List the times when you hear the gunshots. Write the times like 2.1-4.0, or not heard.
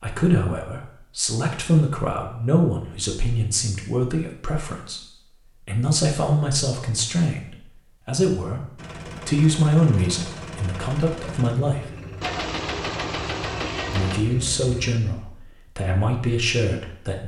12.2-14.2.